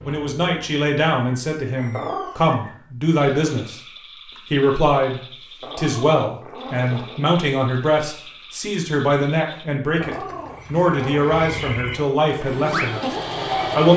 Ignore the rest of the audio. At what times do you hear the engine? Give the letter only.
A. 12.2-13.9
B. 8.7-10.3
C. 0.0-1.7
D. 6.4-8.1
A.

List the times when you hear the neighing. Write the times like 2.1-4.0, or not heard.
not heard.